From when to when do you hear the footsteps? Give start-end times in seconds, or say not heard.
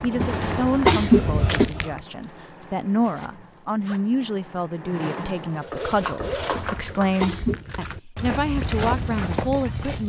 0.0-2.0, 5.8-10.0.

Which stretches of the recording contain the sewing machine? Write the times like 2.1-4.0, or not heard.
0.0-7.2.